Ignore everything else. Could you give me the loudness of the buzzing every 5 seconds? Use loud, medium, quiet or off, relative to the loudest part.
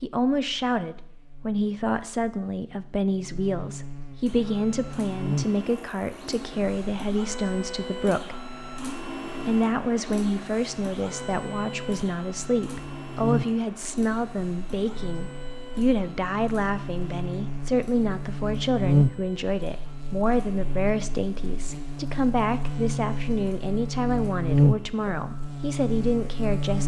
quiet, medium, medium, loud, loud, loud.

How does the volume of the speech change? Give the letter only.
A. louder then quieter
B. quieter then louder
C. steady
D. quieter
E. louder
C.